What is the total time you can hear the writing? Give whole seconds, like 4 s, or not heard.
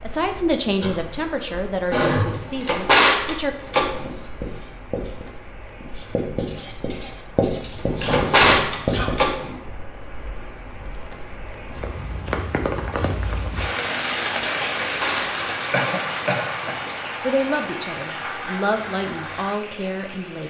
5 s.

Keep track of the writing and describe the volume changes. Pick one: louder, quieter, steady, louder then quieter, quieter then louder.
louder.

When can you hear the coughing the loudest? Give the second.
2 s.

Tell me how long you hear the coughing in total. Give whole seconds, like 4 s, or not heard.
4 s.